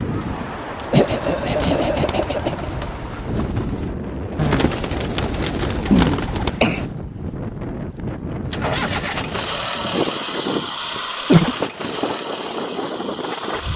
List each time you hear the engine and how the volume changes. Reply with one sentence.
The engine can be heard from 8.4 to 13.7 s, getting quieter.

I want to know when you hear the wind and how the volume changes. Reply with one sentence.
You can hear the wind from 0.0 to 13.7 s, at a steady volume.